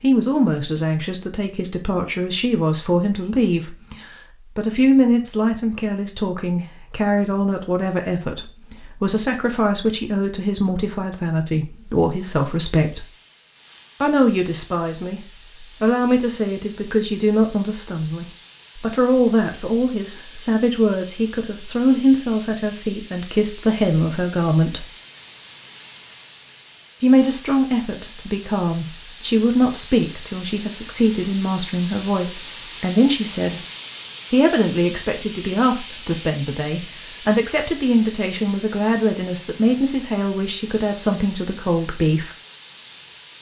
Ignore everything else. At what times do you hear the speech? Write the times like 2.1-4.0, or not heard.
0.0-13.1, 14.0-24.9, 27.0-33.6, 34.3-42.3.